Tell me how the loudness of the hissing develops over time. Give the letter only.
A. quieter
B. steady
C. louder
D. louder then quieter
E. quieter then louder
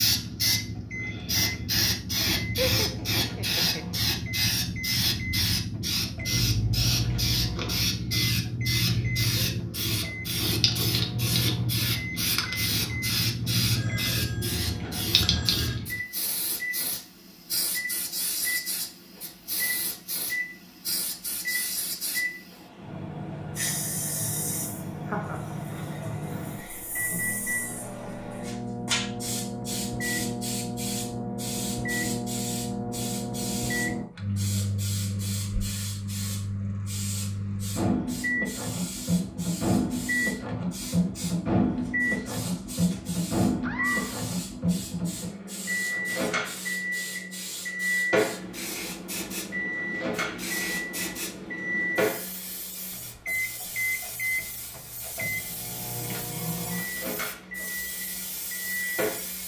A.